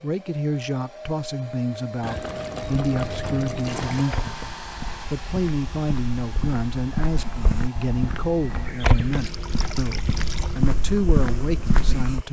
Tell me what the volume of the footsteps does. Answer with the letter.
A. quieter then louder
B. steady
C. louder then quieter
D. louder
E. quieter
D.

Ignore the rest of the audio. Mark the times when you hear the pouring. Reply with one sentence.
You can hear the pouring from 2.0 to 4.0 s and from 9.1 to 10.6 s.